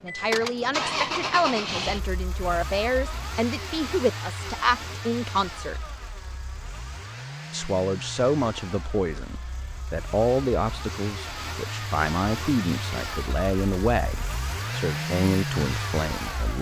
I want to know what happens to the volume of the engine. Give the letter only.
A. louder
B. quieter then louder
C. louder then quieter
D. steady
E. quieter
B.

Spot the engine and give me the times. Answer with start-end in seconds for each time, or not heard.
0.0-16.5.